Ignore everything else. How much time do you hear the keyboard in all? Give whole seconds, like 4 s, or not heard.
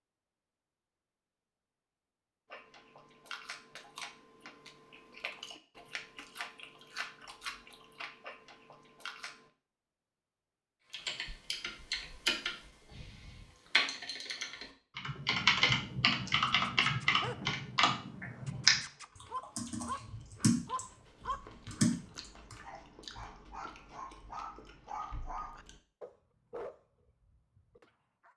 11 s.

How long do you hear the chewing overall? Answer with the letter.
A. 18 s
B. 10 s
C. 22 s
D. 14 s
D.